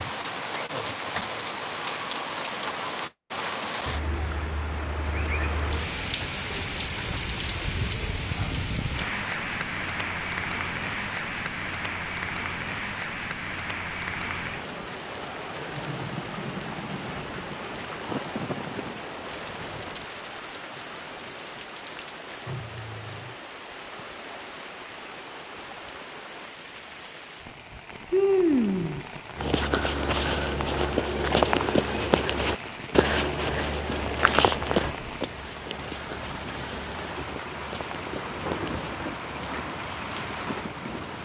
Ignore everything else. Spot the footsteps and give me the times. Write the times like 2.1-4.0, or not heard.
29.4-39.6.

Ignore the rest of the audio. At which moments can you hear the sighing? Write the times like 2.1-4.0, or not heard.
18.0-19.0, 28.1-29.1.